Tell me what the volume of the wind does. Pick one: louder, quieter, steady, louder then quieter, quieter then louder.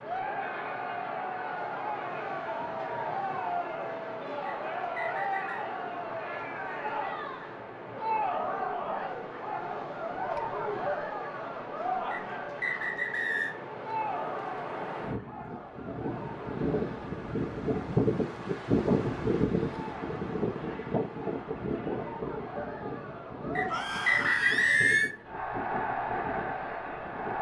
louder then quieter.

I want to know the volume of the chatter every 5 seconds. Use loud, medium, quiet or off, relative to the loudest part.
loud, loud, loud, medium, medium, loud.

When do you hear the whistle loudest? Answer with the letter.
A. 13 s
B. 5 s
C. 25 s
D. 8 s
C.